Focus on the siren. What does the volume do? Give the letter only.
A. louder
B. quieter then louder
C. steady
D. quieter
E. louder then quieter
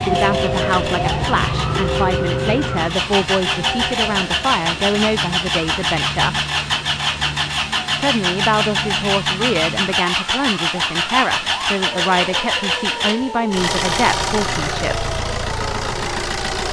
D.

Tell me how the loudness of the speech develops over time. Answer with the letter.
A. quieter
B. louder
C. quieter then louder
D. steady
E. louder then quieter
D.